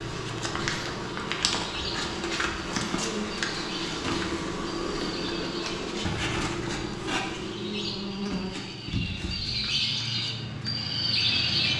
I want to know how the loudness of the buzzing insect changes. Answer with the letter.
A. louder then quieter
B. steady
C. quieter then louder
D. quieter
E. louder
D.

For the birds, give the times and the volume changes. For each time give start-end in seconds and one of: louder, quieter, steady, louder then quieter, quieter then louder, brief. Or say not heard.
0.0-11.7 louder.